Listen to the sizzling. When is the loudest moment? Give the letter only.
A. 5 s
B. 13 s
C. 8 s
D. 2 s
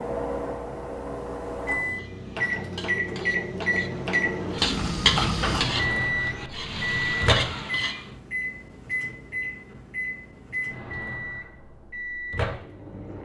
A.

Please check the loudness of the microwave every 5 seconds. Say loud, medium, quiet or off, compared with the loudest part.
loud, loud, medium.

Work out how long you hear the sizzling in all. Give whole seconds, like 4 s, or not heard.
6 s.